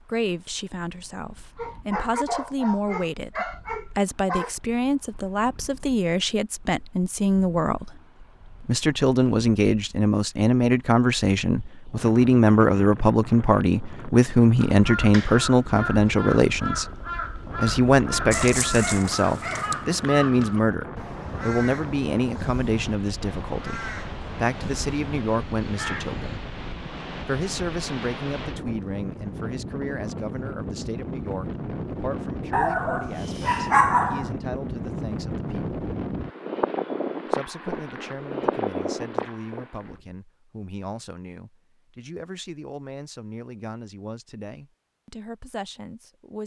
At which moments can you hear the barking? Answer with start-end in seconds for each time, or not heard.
1.6-4.5, 18.3-19.8, 32.5-34.3.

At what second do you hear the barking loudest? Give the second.
34 s.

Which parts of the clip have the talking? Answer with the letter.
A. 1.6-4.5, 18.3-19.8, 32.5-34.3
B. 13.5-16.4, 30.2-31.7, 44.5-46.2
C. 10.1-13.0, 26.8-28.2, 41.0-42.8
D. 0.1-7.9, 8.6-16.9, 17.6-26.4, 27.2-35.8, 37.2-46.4
D.